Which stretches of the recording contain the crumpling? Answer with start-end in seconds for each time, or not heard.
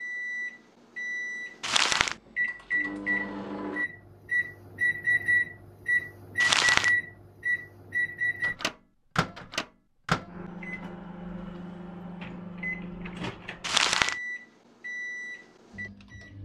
1.6-2.1, 6.4-6.9, 13.6-14.2.